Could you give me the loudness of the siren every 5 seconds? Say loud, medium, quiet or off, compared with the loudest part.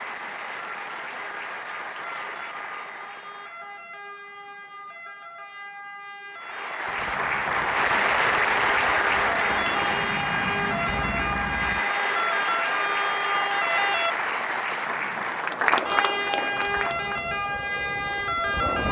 quiet, medium, loud, loud.